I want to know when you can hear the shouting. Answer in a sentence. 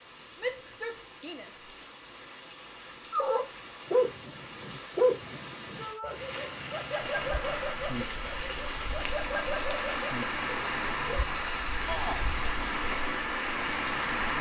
The shouting can be heard from 0.4 to 1.7 s, from 5.8 to 6.2 s and from 11.8 to 12.2 s.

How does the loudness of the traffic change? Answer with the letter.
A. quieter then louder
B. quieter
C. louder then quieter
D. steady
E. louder
E.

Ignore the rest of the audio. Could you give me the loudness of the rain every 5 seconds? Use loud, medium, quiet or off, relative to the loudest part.
medium, loud, loud.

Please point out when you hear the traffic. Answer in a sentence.
The traffic can be heard from 7.0 to 14.3 s.